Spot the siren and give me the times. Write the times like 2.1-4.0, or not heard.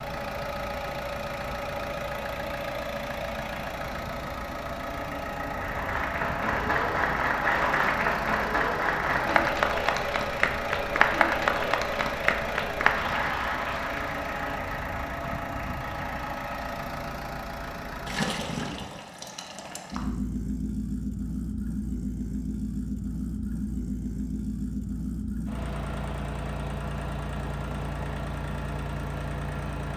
not heard.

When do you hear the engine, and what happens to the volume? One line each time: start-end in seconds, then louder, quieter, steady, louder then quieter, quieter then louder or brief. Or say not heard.
0.0-29.9 steady.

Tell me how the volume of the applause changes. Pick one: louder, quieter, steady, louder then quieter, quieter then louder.
quieter.